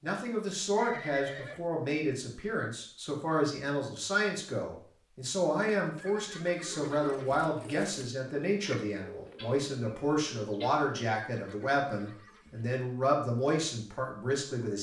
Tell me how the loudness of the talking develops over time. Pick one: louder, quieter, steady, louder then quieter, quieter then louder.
steady.